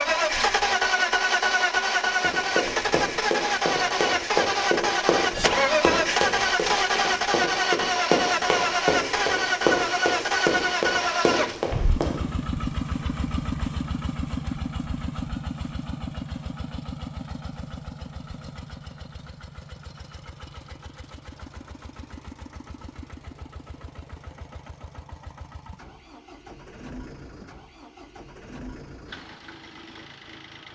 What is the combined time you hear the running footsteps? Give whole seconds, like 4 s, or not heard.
10 s.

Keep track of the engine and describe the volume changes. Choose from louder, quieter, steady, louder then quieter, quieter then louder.
quieter.